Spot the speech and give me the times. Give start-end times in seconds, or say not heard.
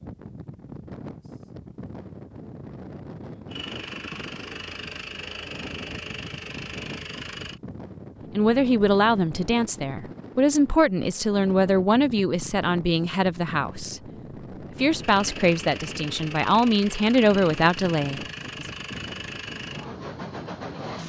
8.3-14.0, 14.7-18.6.